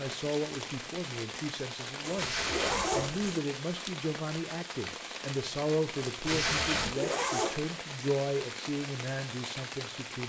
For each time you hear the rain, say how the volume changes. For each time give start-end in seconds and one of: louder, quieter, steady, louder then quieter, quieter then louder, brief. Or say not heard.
0.0-10.2 steady.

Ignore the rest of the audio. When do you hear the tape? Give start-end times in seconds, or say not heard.
2.1-3.1, 6.2-7.0.